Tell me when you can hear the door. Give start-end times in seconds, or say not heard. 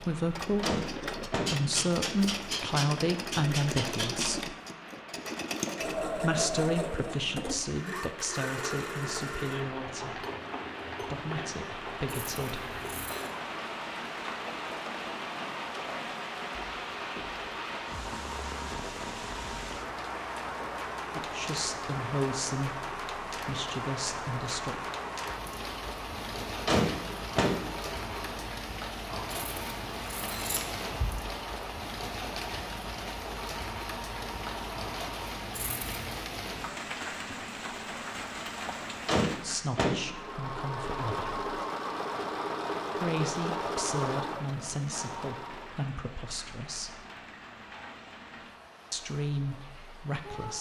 0.6-1.6, 26.6-27.6, 39.0-40.0.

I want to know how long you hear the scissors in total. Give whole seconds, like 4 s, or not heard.
4 s.